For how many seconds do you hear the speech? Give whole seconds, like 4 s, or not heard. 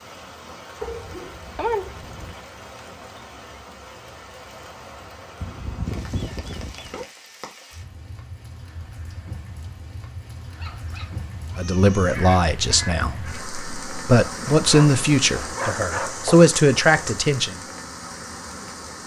6 s.